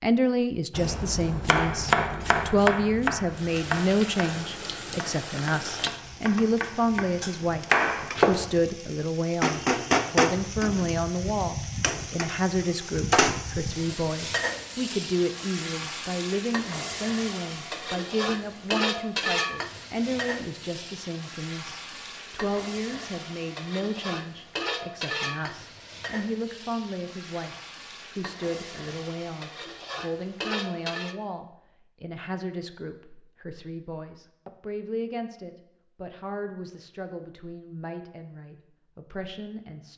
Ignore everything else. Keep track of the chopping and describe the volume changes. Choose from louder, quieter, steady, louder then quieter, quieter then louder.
quieter then louder.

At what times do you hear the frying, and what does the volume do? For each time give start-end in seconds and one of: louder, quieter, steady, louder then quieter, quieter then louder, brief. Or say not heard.
3.3-31.1 louder then quieter.